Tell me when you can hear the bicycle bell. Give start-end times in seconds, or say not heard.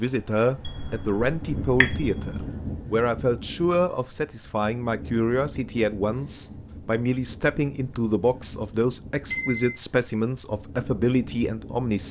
0.7-2.5, 9.3-9.8.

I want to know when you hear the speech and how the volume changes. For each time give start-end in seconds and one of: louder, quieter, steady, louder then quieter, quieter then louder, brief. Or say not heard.
0.0-12.0 steady.